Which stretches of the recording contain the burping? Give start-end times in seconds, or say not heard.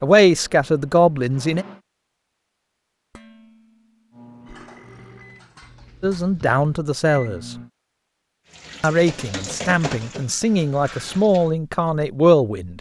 4.3-5.3.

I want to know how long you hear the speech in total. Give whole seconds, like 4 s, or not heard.
7 s.